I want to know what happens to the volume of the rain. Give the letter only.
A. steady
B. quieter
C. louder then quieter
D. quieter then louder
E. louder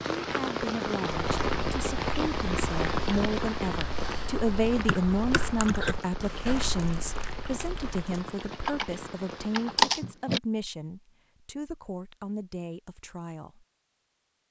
B.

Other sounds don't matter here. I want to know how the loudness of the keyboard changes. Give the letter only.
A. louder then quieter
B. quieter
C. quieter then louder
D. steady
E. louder
C.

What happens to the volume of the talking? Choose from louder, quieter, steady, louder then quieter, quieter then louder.
louder then quieter.